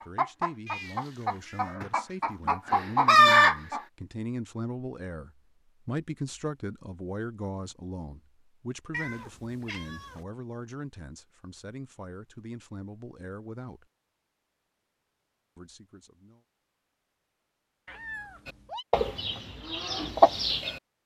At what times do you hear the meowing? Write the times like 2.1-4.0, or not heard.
0.7-1.8, 8.9-10.2, 17.9-18.9.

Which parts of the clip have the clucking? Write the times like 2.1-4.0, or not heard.
0.0-3.8, 18.4-20.8.